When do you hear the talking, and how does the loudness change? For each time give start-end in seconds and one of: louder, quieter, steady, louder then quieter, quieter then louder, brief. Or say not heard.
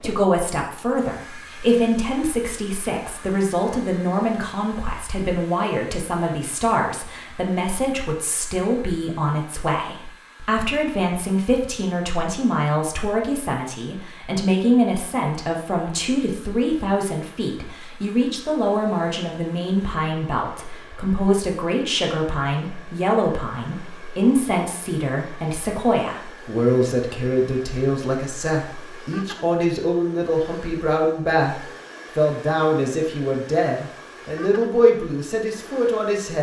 0.0-36.3 steady.